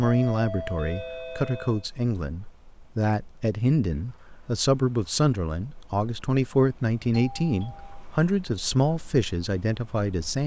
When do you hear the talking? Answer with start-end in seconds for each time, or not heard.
0.0-10.4.